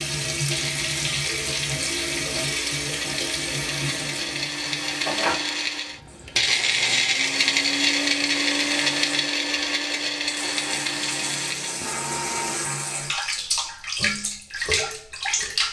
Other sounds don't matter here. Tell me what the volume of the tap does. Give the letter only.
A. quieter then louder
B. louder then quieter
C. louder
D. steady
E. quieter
A.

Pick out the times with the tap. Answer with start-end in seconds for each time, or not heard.
0.0-15.6.